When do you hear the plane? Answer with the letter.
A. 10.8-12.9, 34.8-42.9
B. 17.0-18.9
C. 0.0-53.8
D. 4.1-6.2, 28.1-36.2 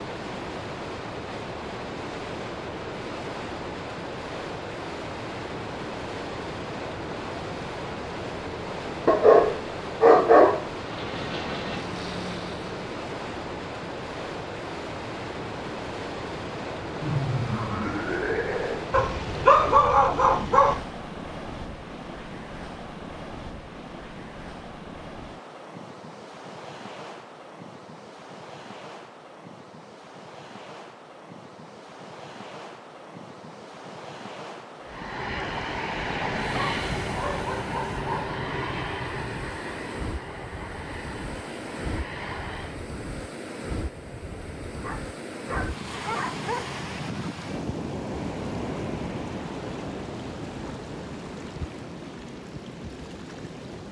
A.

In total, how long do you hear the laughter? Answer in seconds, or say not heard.
2 s.